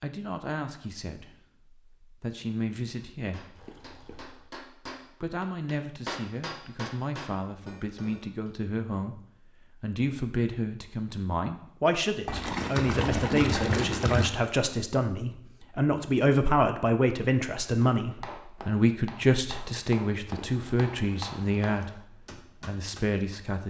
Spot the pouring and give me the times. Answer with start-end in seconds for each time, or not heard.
3.5-4.5, 12.2-14.3, 20.2-22.1.